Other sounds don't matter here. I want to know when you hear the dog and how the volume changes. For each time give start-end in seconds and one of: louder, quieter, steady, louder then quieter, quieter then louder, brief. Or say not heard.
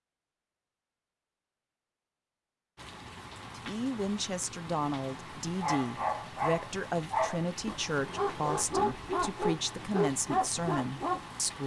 5.6-11.2 steady.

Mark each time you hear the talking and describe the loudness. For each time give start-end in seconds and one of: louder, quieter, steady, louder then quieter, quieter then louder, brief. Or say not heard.
3.5-11.6 steady.